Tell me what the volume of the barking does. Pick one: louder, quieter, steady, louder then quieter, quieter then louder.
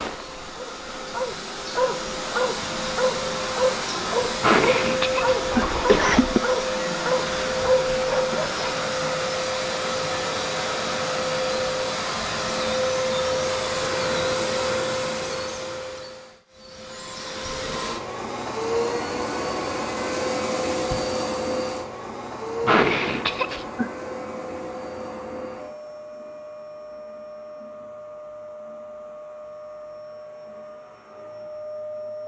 steady.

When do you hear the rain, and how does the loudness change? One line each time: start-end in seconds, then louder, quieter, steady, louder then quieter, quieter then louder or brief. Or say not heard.
not heard.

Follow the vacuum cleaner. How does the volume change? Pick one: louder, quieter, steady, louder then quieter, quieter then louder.
quieter.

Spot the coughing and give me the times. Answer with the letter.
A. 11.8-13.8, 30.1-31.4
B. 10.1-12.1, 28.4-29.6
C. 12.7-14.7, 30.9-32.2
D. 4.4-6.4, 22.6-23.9
D.